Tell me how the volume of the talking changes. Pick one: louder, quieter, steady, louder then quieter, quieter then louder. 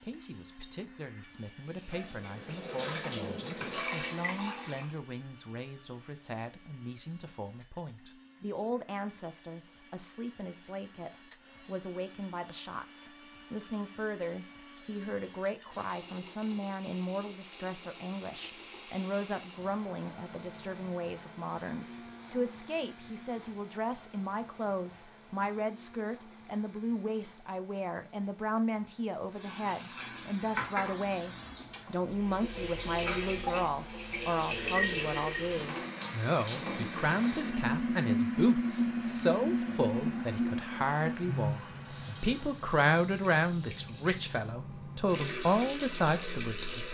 louder.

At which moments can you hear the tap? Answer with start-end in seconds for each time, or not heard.
1.6-5.0, 29.3-46.8.